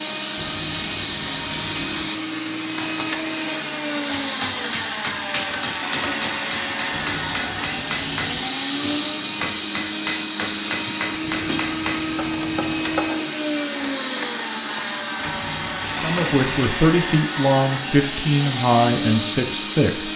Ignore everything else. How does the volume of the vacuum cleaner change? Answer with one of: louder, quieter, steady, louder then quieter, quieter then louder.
steady.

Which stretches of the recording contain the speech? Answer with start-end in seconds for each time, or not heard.
15.9-20.1.